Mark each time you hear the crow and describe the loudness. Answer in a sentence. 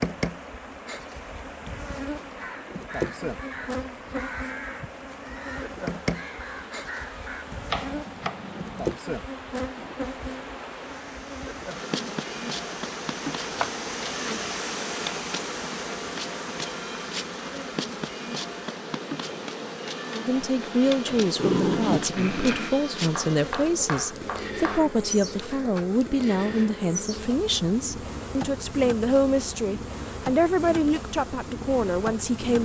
You can hear the crow from 2.4 to 7.5 s, at a steady volume.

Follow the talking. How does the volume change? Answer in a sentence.
The volume of the talking stays about the same.